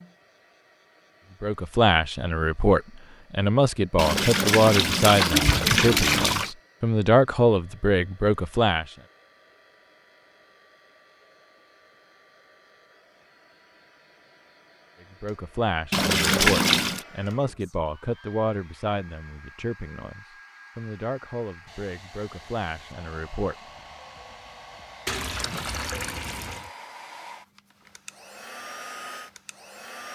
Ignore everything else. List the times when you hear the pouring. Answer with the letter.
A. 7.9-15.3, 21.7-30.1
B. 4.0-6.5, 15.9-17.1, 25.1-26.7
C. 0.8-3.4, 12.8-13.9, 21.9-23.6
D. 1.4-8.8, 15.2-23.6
B.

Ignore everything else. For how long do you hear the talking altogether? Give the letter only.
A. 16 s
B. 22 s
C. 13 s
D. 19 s
A.